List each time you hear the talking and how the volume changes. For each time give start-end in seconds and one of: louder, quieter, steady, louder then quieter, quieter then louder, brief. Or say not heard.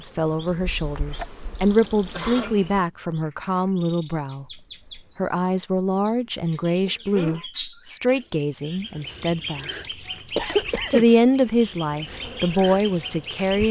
0.0-9.9 steady
10.9-13.6 brief.